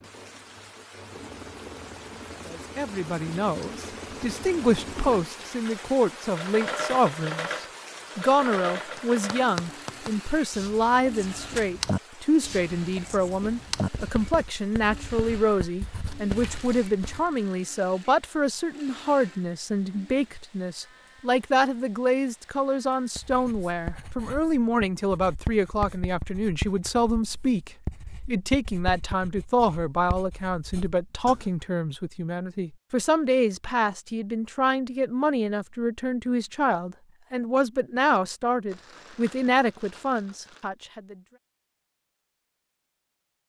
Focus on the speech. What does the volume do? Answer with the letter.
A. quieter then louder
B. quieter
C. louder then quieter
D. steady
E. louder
D.